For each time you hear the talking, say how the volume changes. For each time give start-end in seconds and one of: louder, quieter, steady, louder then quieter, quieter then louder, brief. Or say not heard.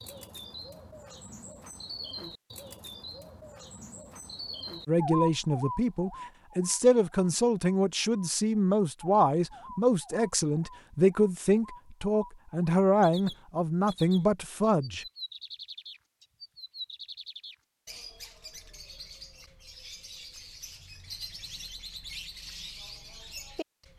4.8-15.1 steady.